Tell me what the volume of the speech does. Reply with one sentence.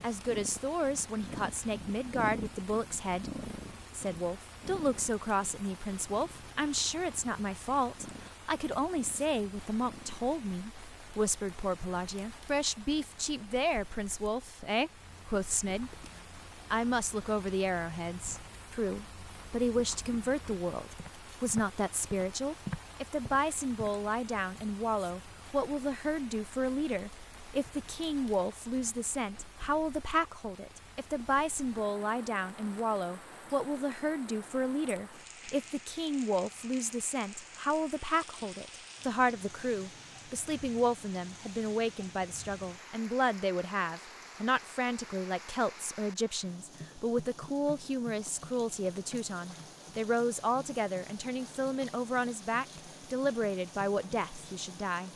The volume of the speech stays about the same.